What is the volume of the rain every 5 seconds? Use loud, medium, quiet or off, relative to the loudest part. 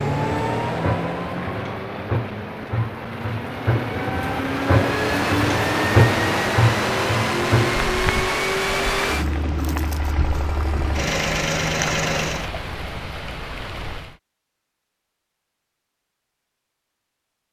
loud, loud, medium, off.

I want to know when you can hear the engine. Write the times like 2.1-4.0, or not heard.
0.0-12.5.